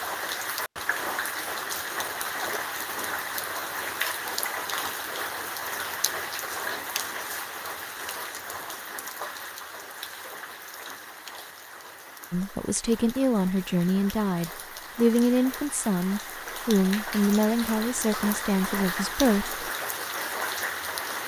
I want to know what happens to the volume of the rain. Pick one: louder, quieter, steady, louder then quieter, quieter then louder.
quieter then louder.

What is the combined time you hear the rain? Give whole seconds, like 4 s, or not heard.
21 s.